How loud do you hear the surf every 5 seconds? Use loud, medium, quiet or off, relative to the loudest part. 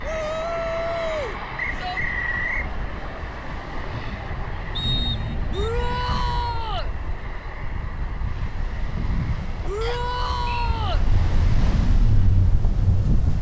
medium, medium, loud.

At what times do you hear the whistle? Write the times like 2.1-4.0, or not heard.
1.6-2.7, 4.8-5.5, 9.8-10.8.